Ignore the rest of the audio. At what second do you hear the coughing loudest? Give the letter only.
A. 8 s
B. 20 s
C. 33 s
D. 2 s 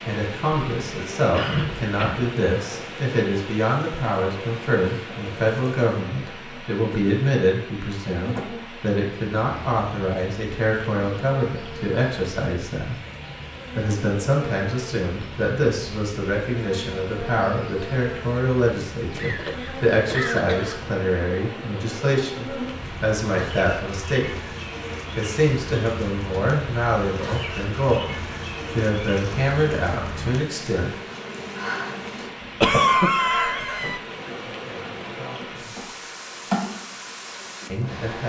C.